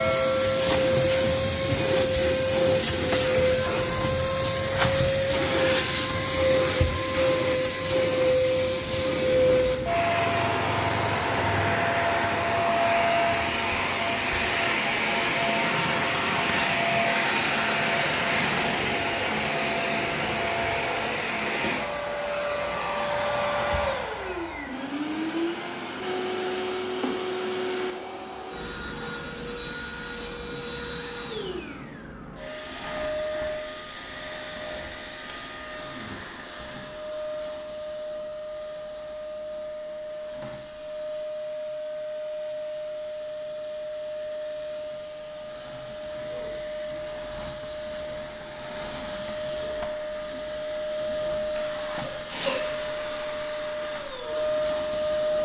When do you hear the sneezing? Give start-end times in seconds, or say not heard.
51.5-52.6.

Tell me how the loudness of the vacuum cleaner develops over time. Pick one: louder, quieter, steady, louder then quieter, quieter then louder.
quieter.